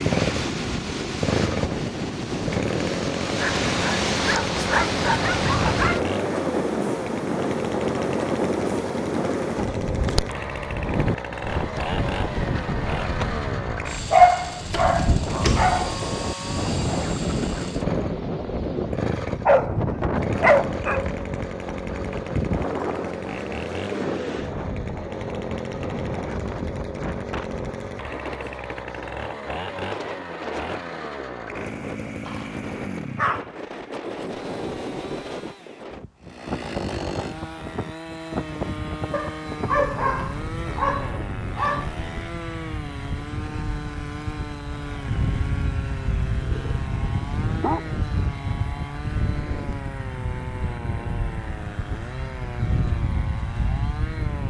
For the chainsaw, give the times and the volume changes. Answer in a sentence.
You can hear the chainsaw from 0.0 to 54.4 s, getting quieter.